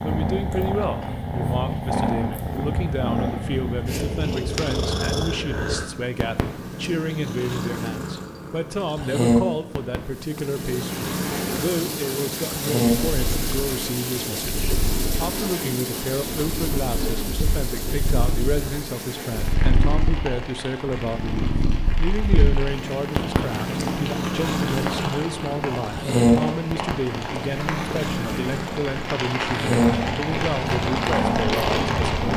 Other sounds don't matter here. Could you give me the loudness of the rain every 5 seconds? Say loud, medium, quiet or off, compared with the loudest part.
off, off, medium, medium, medium, medium, loud.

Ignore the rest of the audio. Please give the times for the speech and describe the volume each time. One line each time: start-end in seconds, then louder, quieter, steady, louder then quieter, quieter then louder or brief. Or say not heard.
0.0-32.3 steady.